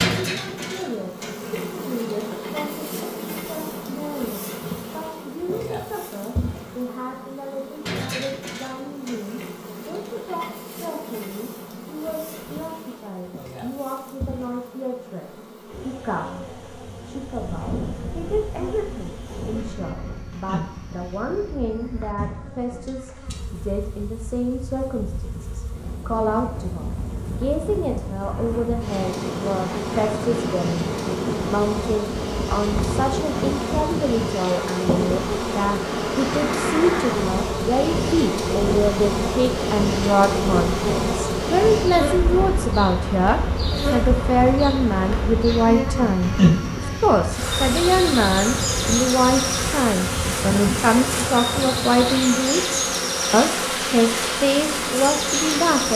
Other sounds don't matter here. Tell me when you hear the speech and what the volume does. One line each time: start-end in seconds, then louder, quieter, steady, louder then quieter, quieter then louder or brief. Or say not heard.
0.1-55.9 louder.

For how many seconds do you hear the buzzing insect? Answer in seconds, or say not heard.
56 s.